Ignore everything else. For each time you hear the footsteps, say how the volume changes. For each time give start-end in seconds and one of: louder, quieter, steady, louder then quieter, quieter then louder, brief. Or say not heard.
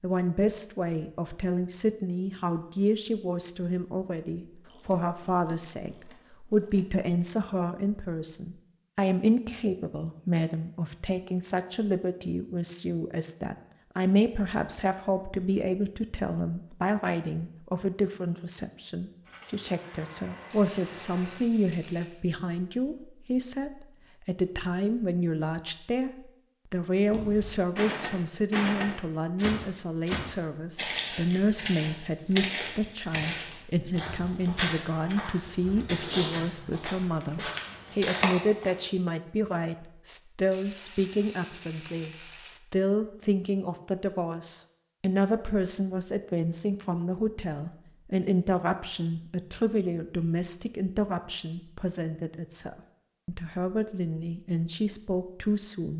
27.1-38.8 steady.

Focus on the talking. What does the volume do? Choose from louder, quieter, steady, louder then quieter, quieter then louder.
steady.